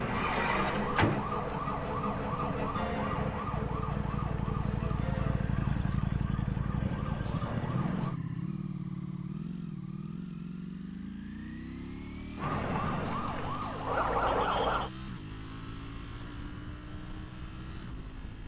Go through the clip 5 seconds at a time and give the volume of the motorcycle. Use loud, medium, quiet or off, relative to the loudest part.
loud, loud, medium, medium.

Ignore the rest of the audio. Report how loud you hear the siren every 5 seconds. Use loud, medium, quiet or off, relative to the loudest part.
loud, medium, loud, off.